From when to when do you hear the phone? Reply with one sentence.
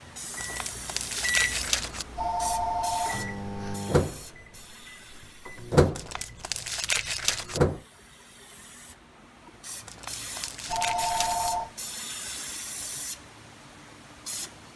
The phone can be heard from 2.1 to 3.8 s and from 10.7 to 11.7 s.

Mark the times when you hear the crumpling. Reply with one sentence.
The crumpling can be heard from 0.4 to 2.0 s, from 6.0 to 7.6 s and from 9.8 to 11.5 s.